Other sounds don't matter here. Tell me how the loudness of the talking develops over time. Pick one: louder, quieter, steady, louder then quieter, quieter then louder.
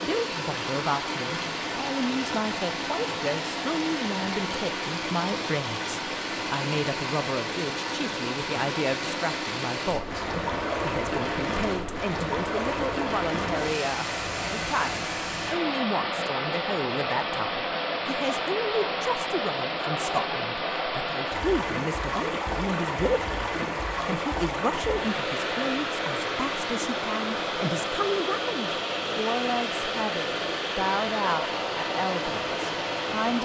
steady.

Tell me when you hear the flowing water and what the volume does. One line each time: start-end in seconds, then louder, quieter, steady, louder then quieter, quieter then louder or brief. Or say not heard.
0.0-33.4 steady.